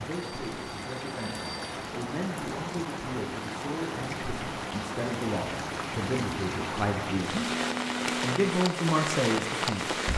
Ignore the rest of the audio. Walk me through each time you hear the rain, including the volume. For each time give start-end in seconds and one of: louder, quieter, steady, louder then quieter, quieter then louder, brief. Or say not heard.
0.0-10.1 louder.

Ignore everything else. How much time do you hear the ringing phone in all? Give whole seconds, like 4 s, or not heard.
3 s.